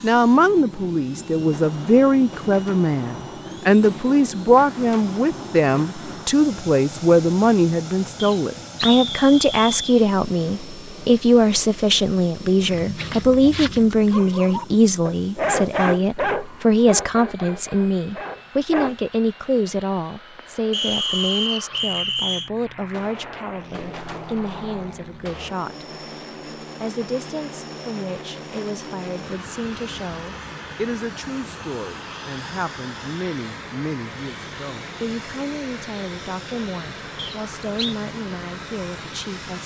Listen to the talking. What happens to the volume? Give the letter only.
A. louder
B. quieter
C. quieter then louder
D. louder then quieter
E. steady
B.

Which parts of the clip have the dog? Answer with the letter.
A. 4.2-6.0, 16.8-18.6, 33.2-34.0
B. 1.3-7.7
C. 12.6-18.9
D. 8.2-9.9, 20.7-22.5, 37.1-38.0
C.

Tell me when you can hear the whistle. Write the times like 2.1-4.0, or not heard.
8.2-9.9, 20.7-22.5, 37.1-38.0.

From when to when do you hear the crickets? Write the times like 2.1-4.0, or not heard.
not heard.